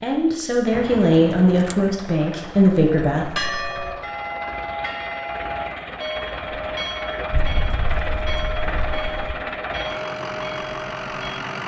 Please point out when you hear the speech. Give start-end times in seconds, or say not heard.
0.0-3.4.